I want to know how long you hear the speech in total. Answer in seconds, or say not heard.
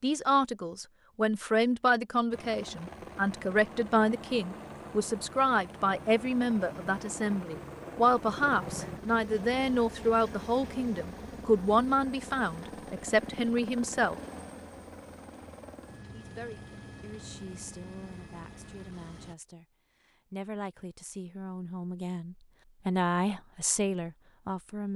22 s.